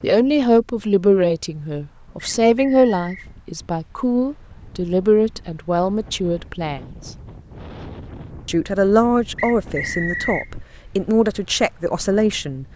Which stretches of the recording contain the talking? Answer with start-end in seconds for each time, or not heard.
0.0-7.1, 8.4-12.7.